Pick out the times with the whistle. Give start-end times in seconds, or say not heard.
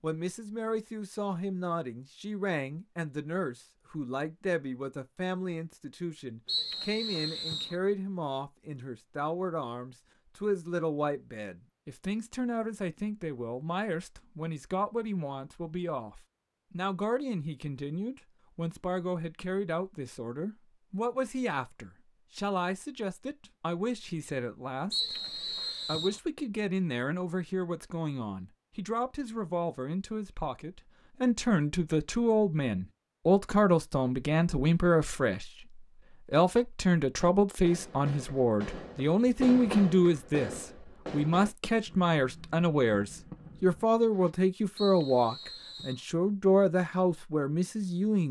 6.5-7.8, 24.9-26.2, 44.8-46.0.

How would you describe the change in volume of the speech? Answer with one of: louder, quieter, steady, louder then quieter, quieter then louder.
louder.